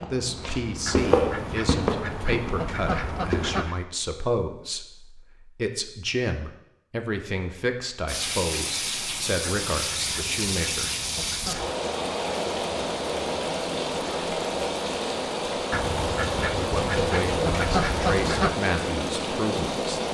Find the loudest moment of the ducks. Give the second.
18 s.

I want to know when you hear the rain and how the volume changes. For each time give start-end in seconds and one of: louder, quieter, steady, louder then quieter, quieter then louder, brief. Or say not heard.
8.1-20.1 steady.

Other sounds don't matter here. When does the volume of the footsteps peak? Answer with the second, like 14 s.
1 s.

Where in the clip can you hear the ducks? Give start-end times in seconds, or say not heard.
0.8-3.8, 9.4-11.8, 15.7-18.6.